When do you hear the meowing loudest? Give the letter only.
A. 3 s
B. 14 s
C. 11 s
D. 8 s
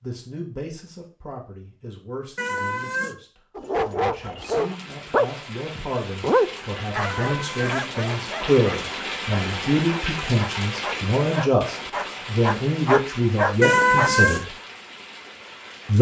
B.